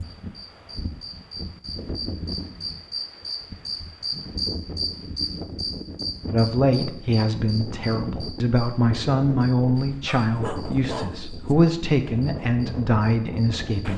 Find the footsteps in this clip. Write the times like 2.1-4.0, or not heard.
not heard.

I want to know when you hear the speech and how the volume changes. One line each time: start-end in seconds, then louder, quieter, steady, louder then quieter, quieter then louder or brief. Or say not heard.
6.3-13.9 steady.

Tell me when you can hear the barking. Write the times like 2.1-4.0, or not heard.
10.1-11.6.